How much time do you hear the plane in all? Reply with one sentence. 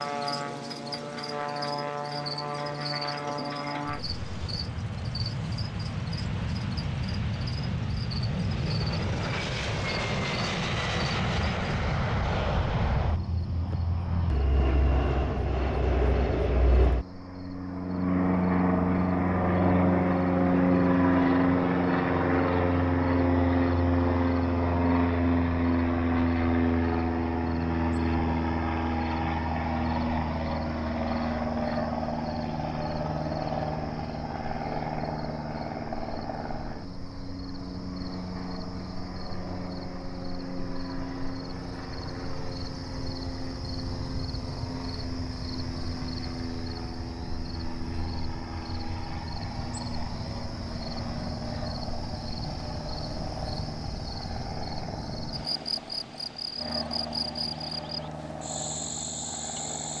The plane can be heard for 60 seconds in total.